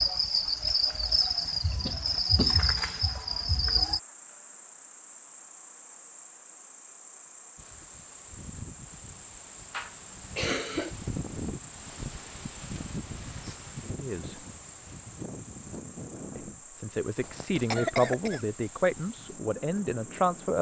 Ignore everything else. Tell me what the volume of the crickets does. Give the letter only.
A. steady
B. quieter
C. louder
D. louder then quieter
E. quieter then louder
B.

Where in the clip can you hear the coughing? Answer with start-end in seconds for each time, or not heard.
1.9-3.0, 9.7-10.9, 17.1-18.4.